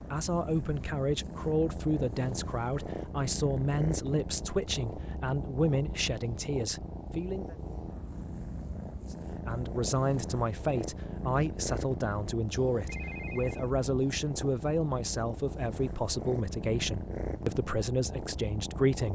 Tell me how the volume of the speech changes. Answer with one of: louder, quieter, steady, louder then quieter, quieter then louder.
steady.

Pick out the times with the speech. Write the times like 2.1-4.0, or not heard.
0.0-7.5, 9.4-19.1.